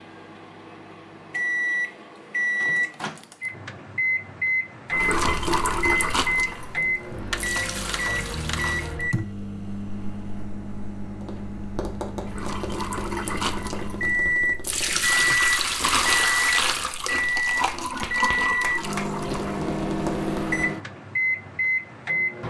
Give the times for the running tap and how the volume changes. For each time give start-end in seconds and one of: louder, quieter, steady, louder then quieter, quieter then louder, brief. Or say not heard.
4.9-9.0 quieter then louder
12.2-19.6 louder then quieter.